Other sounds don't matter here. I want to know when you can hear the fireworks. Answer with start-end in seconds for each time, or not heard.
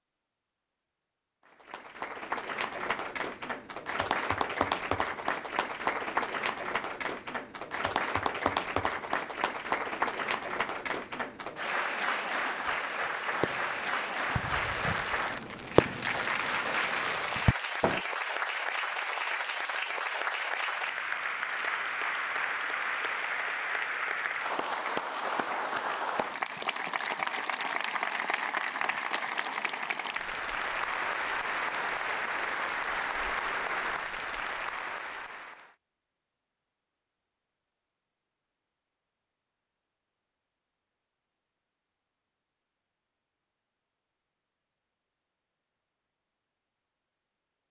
13.4-18.0.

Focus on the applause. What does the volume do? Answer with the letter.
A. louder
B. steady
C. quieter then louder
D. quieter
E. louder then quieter
B.